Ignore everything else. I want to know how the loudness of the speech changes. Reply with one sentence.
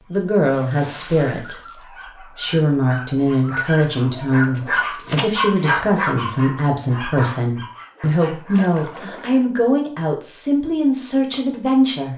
The volume of the speech stays about the same.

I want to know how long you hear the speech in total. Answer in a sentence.
The speech can be heard for 12 seconds in total.